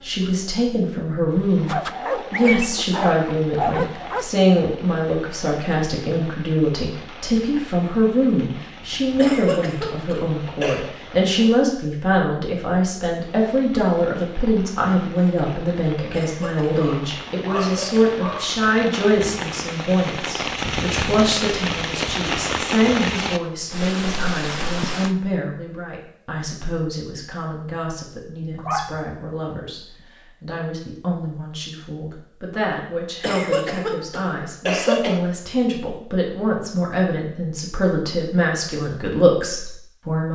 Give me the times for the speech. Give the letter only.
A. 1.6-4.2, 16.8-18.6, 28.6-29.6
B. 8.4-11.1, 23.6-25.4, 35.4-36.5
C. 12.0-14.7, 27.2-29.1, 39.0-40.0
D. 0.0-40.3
D.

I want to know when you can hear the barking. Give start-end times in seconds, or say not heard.
1.6-4.2, 16.8-18.6, 28.6-29.6.